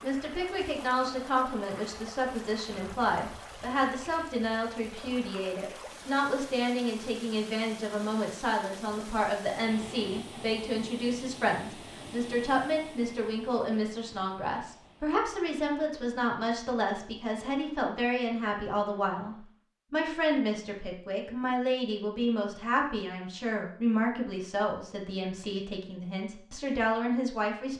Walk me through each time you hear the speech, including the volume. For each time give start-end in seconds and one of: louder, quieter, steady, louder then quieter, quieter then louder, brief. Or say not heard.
0.0-27.7 steady.